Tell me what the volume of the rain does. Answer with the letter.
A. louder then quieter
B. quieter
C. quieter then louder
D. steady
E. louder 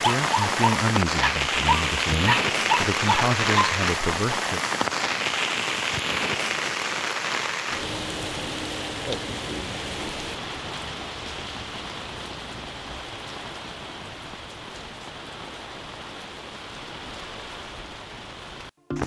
B.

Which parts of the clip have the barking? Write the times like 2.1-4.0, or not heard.
0.0-4.3.